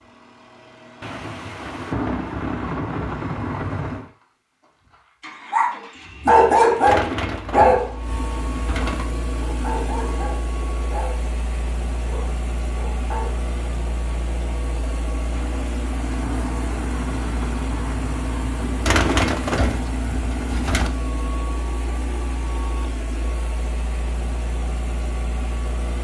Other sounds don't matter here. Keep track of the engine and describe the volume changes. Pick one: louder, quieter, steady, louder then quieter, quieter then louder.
louder.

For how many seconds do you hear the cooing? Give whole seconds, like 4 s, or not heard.
4 s.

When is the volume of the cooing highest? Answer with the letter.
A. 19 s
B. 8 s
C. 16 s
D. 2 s
A.